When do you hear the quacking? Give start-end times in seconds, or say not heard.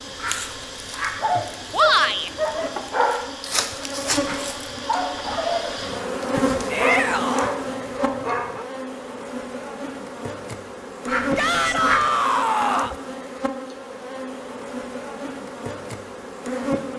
0.1-1.2, 11.1-12.1.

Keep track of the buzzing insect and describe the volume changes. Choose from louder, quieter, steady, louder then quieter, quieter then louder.
louder then quieter.